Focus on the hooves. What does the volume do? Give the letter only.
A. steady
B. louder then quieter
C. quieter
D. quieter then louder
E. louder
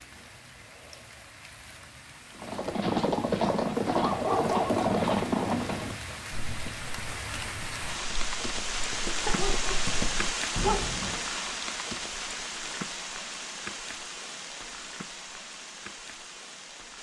D.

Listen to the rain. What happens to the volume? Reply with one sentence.
The loudness of the rain goes up, then down.